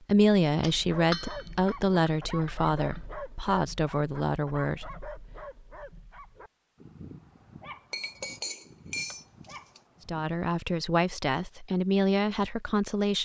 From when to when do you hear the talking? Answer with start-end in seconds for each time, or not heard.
0.1-5.1, 10.1-13.2.